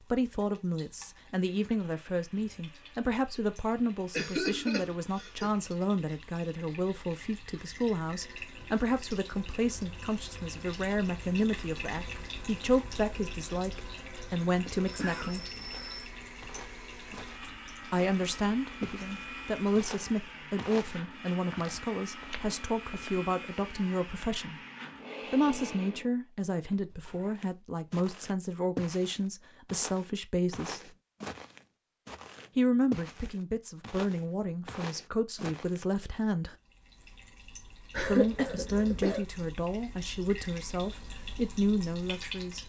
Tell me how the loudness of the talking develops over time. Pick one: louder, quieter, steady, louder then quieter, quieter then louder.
steady.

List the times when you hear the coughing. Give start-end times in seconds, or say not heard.
4.1-5.5, 14.8-16.1, 37.9-39.2.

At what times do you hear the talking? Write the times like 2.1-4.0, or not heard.
0.0-15.4, 17.8-24.6, 25.3-30.9, 32.5-36.5, 38.0-42.6.